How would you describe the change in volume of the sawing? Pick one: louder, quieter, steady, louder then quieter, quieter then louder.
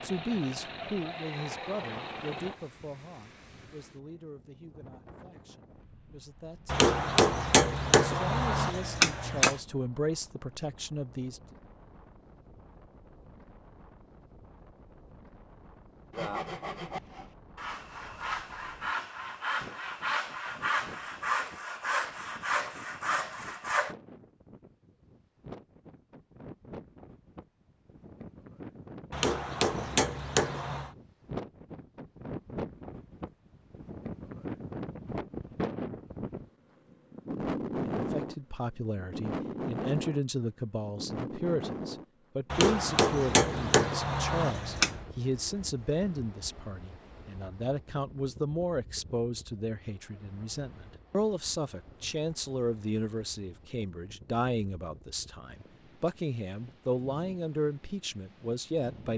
louder.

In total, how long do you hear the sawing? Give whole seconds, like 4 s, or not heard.
8 s.